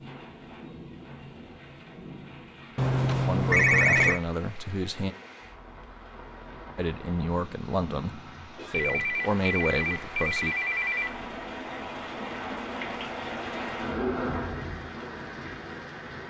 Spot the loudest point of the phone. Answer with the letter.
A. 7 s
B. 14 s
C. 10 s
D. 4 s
D.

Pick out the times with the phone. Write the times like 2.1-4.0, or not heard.
2.8-4.2, 8.7-11.2.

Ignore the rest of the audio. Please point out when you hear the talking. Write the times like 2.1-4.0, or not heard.
3.2-5.2, 6.8-10.6.